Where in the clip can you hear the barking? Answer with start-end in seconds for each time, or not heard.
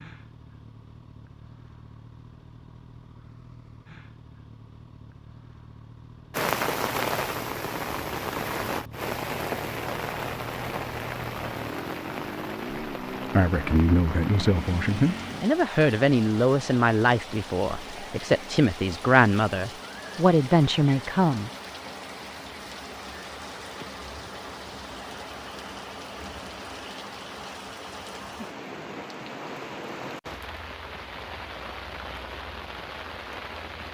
not heard.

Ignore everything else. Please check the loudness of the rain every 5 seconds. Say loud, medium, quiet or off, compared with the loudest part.
off, loud, medium, medium, medium, medium, medium.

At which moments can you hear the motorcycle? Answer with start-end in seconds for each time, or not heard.
0.0-15.4.